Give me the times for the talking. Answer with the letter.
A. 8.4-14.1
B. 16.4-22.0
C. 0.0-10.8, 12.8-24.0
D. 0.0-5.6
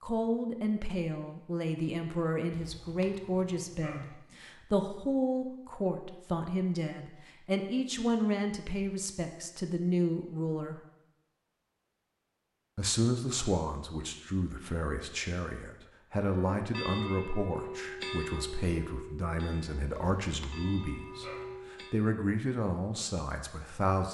C.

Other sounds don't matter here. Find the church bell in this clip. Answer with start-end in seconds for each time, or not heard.
16.4-22.0.